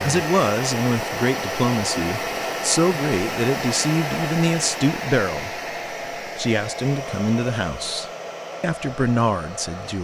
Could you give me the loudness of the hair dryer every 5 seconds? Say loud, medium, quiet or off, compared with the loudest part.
loud, medium.